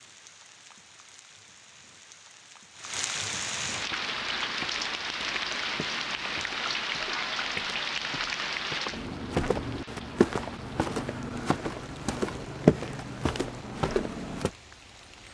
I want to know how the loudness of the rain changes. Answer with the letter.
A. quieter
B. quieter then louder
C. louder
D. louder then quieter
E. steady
D.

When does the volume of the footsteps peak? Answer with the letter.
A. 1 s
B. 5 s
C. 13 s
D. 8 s
C.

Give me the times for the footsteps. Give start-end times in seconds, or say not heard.
3.9-14.5.